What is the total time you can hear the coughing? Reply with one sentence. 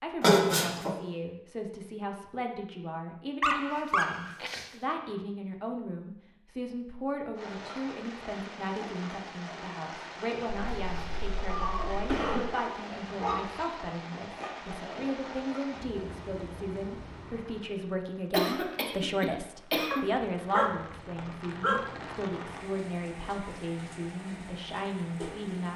You can hear the coughing for 4 seconds altogether.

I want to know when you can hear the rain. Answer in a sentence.
The rain can be heard from 7.3 to 25.7 s.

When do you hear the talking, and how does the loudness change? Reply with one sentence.
You can hear the talking from 0.0 to 25.7 s, at a steady volume.